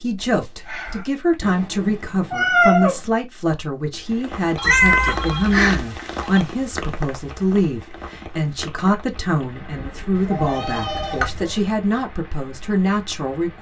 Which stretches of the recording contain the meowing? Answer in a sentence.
You can hear the meowing from 1.4 to 3.0 s, from 4.7 to 5.8 s and from 10.2 to 11.6 s.